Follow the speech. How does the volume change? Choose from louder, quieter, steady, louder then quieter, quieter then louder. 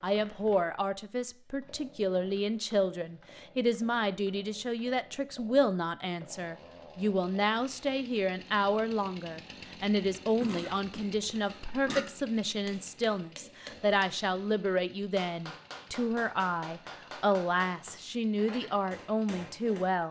steady.